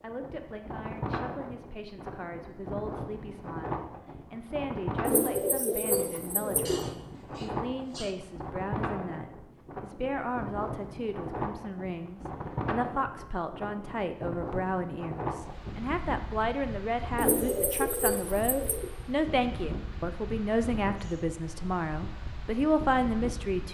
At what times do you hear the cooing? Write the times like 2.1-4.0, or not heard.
5.0-6.8, 17.1-18.9.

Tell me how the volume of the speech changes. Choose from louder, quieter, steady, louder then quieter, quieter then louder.
louder.